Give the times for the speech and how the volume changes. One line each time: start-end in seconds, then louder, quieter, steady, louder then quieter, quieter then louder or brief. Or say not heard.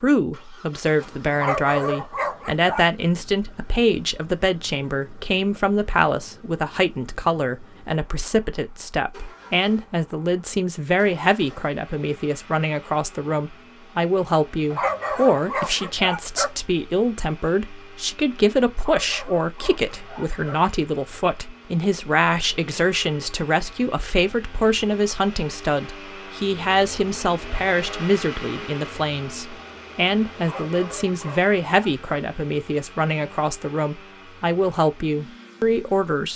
0.0-36.3 steady.